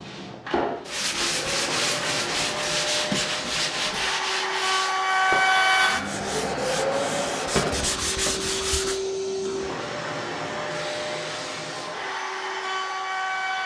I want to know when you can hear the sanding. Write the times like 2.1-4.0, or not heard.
0.8-9.0.